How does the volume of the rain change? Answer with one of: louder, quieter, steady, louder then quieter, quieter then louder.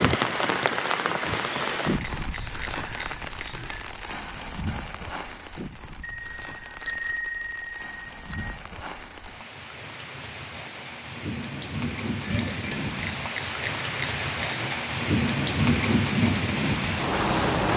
quieter then louder.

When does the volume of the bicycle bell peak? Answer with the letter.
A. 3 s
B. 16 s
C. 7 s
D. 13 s
C.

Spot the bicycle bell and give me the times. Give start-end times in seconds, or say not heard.
1.2-3.9, 6.0-8.6, 12.2-14.8.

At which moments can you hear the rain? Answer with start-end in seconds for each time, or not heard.
0.0-17.7.